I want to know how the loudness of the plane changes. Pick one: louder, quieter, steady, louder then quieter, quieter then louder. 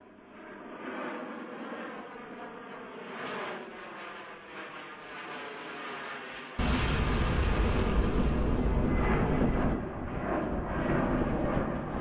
louder.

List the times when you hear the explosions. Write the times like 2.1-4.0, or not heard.
6.5-9.8.